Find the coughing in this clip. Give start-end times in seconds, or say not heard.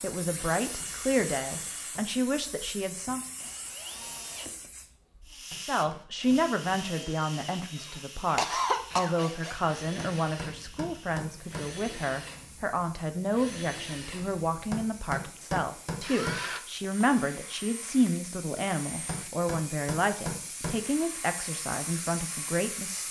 8.3-9.2.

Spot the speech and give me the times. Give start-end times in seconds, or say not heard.
0.0-3.2, 5.6-23.0.